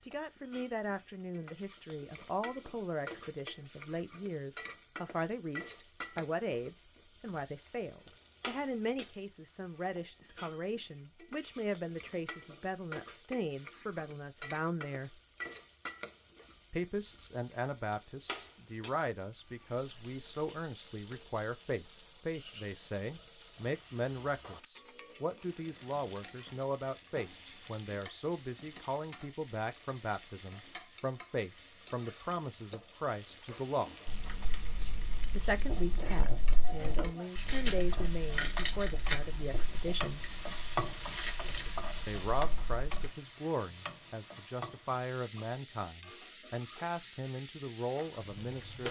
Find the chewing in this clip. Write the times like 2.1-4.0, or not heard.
34.0-43.1.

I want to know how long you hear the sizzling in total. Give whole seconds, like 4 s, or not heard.
49 s.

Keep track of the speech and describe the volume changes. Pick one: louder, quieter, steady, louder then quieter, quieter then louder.
steady.